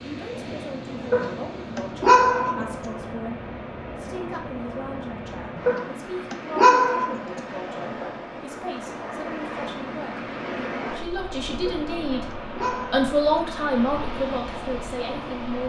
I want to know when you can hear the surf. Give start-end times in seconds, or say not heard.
0.0-15.6.